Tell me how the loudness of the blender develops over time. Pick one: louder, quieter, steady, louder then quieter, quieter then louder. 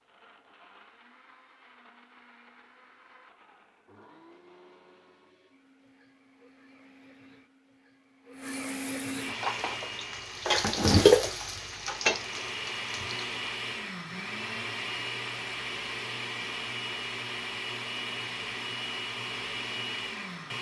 louder.